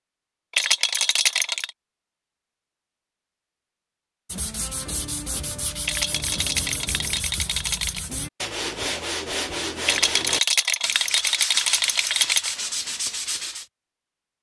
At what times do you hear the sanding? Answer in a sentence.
The sanding can be heard from 4.2 to 13.7 s.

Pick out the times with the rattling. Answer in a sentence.
You can hear the rattling from 0.5 to 1.7 s, from 5.8 to 8.0 s and from 9.8 to 12.6 s.